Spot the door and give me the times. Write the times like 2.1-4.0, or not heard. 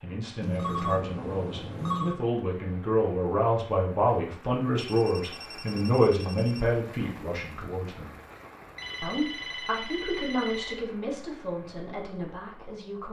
not heard.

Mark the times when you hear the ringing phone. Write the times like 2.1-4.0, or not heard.
0.4-2.2, 4.8-6.7, 8.8-10.8.